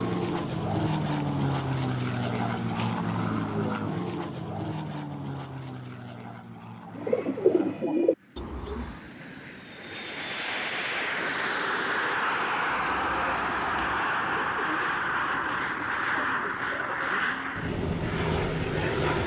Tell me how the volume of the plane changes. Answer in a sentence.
The loudness of the plane goes down, then up.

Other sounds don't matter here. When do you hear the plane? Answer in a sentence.
The plane can be heard from 0.0 to 19.2 s.